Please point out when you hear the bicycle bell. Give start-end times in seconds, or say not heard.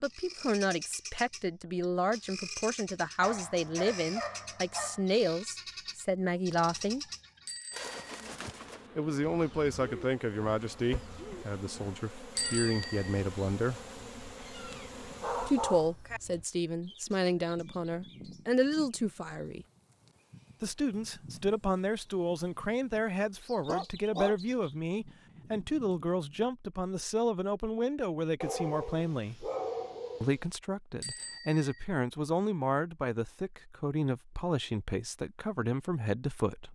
7.5-8.2, 12.3-13.2, 31.0-31.9.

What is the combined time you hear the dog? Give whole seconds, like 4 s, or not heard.
6 s.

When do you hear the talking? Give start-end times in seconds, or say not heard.
0.0-7.0, 8.9-13.8, 15.4-19.6, 20.6-29.5, 30.2-36.6.